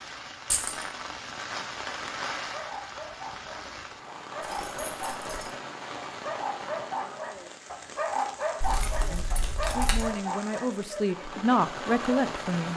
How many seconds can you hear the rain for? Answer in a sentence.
You can hear the rain for 13 seconds altogether.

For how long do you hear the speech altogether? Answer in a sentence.
You can hear the speech for 4 seconds altogether.